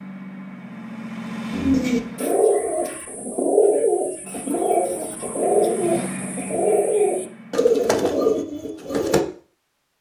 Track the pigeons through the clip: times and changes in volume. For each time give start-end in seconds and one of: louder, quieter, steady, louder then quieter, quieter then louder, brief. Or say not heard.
1.5-9.2 steady.